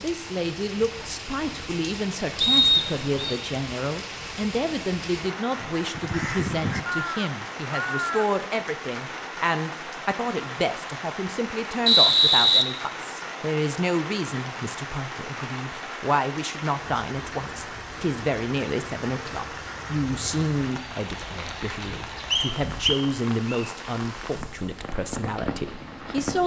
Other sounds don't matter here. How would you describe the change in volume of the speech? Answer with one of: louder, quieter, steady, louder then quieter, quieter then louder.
steady.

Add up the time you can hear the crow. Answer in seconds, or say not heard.
3 s.